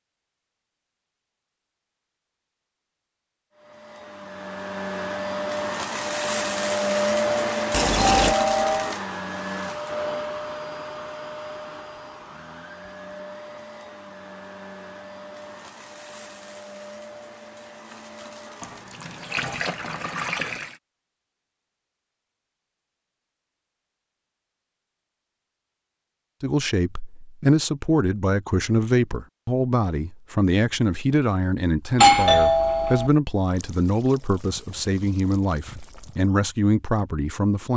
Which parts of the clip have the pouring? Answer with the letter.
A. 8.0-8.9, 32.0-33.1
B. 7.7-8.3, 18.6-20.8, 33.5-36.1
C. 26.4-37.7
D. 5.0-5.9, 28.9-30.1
B.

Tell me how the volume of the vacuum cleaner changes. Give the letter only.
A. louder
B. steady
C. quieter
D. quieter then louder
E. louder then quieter
C.